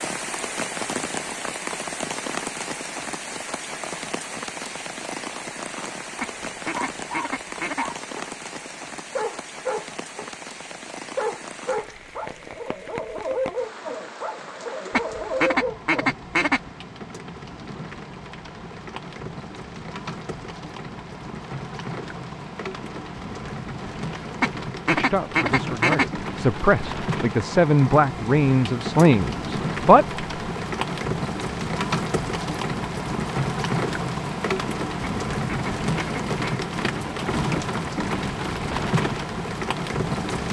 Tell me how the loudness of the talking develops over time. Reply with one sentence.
The volume of the talking goes up.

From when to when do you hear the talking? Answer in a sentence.
You can hear the talking from 24.9 to 30.2 s.